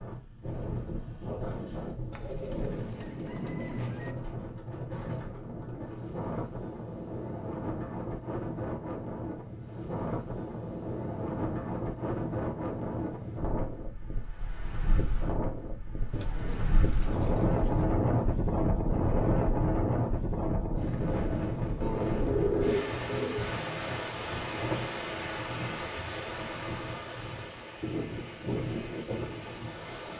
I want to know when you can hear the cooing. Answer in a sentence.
The cooing can be heard from 2.1 to 4.2 s, from 16.1 to 17.9 s and from 21.8 to 23.6 s.